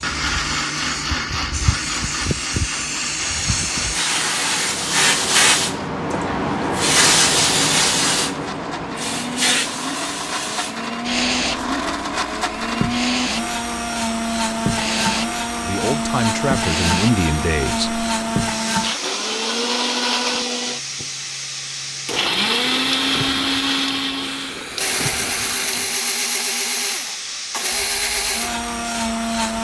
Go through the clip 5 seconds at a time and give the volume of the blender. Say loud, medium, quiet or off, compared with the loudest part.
loud, medium, loud, loud, loud, loud.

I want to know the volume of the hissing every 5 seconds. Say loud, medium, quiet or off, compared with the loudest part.
medium, loud, medium, medium, medium, medium.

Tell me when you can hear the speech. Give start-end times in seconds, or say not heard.
15.6-18.1.